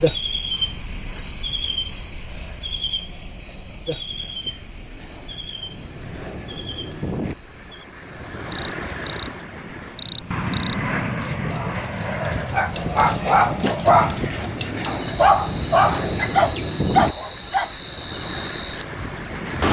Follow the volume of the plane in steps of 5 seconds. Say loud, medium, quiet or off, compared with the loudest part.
quiet, medium, loud, loud.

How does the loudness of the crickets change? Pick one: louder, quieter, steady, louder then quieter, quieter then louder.
quieter then louder.